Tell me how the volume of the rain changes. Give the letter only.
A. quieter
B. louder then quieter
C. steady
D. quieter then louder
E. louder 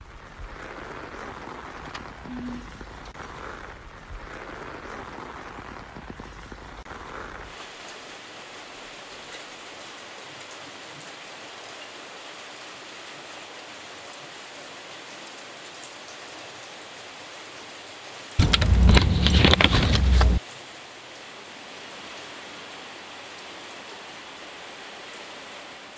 C.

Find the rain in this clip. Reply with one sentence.
The rain can be heard from 0.0 to 25.9 s.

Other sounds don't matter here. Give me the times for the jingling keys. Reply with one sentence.
The jingling keys can be heard from 1.8 to 3.5 s and from 18.4 to 20.4 s.